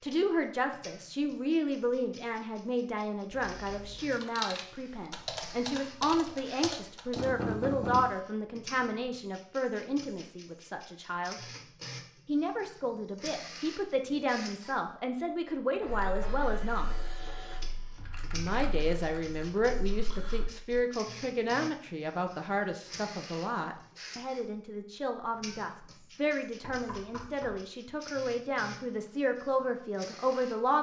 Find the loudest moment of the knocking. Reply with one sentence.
The loudest moment of the knocking is at 8 seconds.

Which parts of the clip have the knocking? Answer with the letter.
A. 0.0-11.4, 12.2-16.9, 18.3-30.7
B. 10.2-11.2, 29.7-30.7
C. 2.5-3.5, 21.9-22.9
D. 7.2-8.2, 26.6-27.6
D.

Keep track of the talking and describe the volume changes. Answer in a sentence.
The loudness of the talking stays about the same.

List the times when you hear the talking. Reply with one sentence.
The talking can be heard from 0.0 to 11.4 s, from 12.2 to 16.9 s and from 18.3 to 30.7 s.